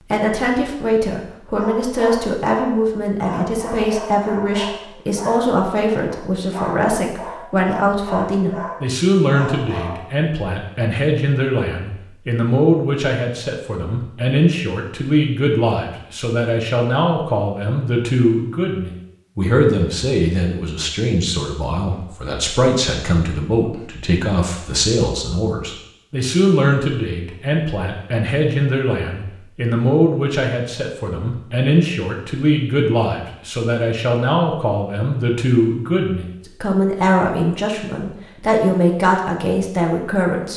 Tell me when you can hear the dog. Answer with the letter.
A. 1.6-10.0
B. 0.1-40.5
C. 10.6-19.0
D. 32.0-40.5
A.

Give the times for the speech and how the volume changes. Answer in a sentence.
The speech can be heard from 0.1 to 40.5 s, at a steady volume.